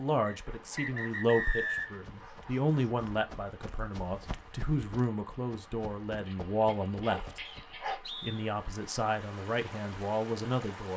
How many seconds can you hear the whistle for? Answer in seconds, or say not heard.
3 s.